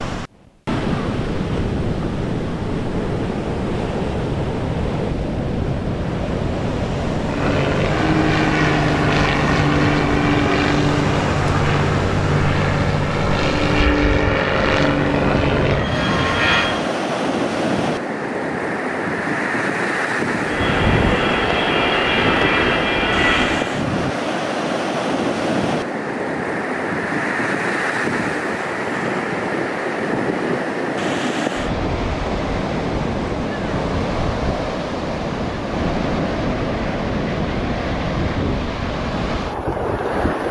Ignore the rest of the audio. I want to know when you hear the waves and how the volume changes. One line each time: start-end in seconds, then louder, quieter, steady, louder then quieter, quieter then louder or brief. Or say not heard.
0.0-40.4 steady.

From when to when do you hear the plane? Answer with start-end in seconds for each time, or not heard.
7.2-16.9, 20.4-23.8.